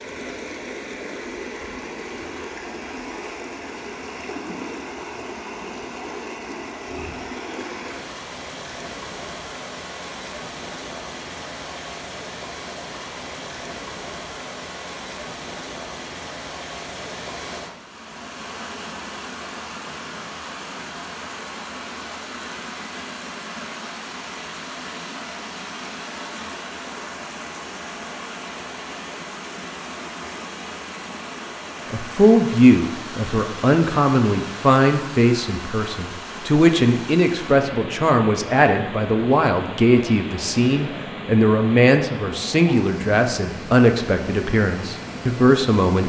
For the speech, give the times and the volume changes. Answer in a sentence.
The speech can be heard from 31.9 to 46.0 s, at a steady volume.